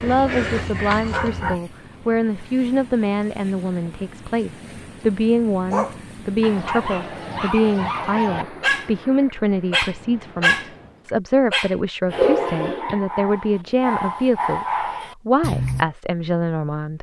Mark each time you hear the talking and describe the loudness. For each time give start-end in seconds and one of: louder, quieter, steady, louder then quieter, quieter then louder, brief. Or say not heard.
0.0-16.9 steady.